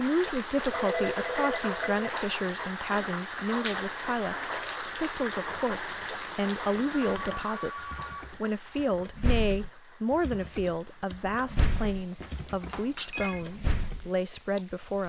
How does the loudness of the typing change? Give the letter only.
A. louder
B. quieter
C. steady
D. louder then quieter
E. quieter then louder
A.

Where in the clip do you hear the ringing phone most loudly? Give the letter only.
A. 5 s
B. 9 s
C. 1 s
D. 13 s
C.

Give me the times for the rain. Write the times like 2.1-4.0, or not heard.
0.0-15.0.